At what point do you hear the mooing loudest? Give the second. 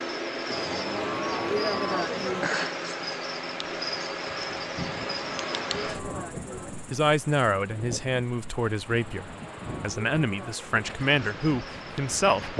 2 s.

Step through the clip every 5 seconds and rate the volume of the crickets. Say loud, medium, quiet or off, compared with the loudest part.
loud, medium, quiet.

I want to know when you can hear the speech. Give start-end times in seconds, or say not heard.
6.9-12.5.